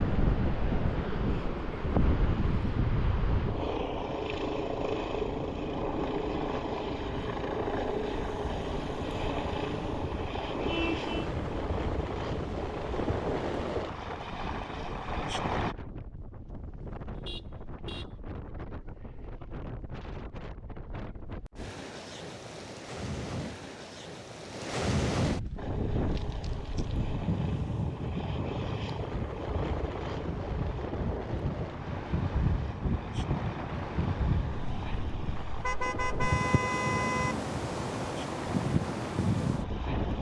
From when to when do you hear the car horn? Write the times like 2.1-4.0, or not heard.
10.7-11.3, 17.1-18.1, 35.6-37.4.